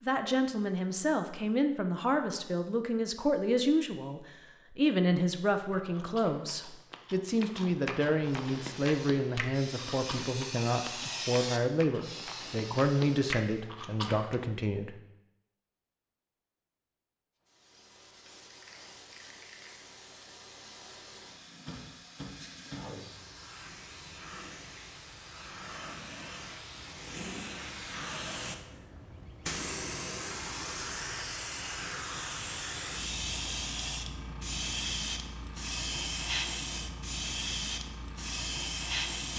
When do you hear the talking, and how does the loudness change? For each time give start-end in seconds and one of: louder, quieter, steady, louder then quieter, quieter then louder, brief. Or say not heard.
0.0-14.9 steady.